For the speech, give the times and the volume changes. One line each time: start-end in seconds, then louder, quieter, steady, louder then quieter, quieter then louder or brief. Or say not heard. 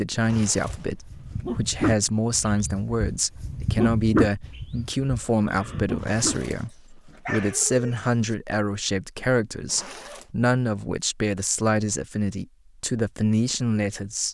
0.0-14.2 steady.